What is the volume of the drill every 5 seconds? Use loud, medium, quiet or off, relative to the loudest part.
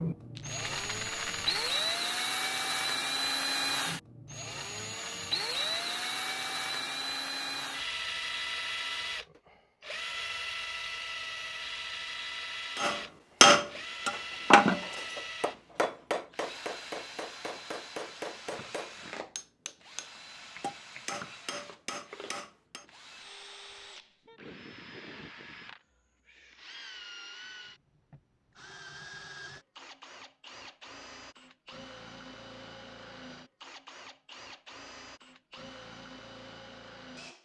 loud, loud, medium, quiet, quiet, quiet, quiet, quiet.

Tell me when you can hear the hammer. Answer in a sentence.
The hammer can be heard from 12.8 to 22.9 s.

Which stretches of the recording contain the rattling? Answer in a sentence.
You can hear the rattling from 0.3 to 1.9 s.